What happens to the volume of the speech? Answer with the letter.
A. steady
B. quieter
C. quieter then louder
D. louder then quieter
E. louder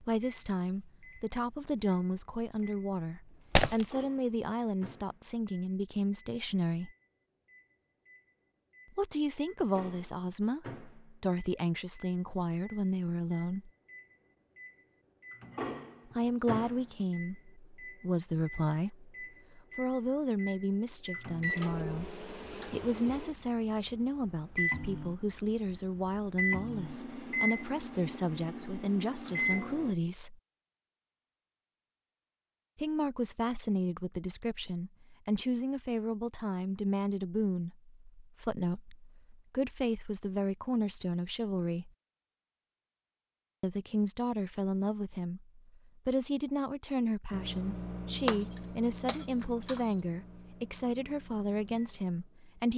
A.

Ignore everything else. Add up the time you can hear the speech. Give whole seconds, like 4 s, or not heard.
44 s.